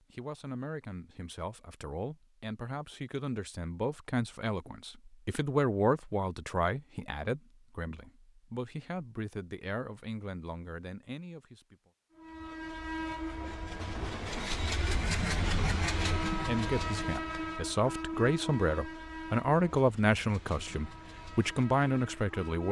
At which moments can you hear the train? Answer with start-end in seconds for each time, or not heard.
12.1-22.6.